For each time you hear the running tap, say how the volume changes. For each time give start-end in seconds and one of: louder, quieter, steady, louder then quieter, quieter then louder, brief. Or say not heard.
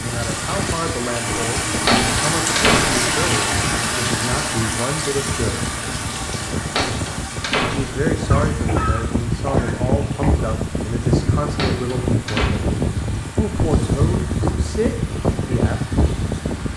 0.0-16.7 quieter.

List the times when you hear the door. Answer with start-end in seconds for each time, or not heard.
1.9-3.0, 6.8-8.1, 11.6-12.5.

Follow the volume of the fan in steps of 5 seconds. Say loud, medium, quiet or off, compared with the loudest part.
medium, loud, loud, loud.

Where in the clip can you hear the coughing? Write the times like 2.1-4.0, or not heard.
8.3-10.3.